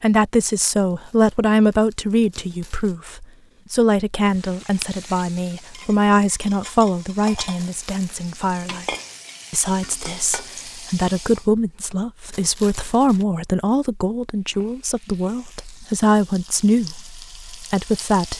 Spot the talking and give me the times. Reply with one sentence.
You can hear the talking from 0.0 to 18.3 s.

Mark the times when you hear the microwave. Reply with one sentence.
You can't hear the microwave here.